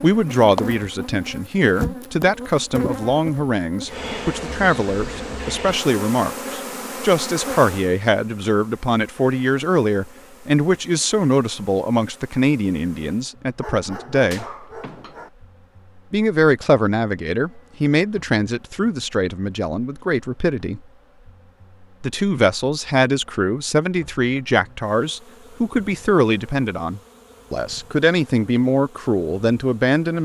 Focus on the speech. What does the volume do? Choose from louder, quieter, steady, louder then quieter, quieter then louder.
steady.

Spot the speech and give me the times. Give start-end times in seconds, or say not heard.
0.0-14.4, 16.1-20.8, 22.0-30.2.